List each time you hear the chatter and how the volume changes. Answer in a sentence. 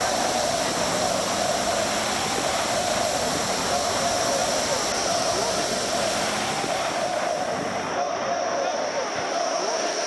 The chatter can be heard from 0.0 to 10.0 s, at a steady volume.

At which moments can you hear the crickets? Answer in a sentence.
You can hear the crickets from 0.0 to 10.0 s.